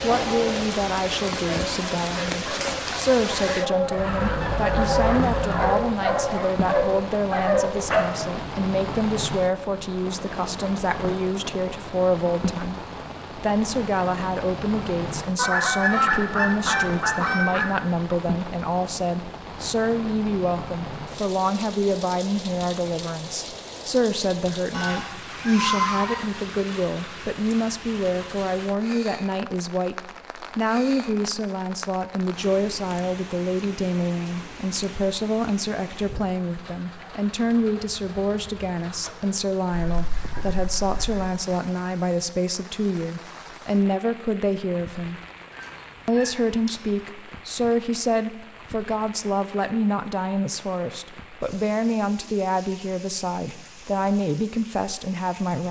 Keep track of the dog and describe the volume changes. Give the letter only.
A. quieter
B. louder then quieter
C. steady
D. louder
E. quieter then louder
D.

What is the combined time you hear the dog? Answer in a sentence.
The dog can be heard for 8 seconds in total.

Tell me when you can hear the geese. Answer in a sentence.
You can hear the geese from 4.0 to 5.8 s, from 15.3 to 17.6 s, from 24.7 to 26.2 s, from 39.7 to 41.3 s and from 45.5 to 46.7 s.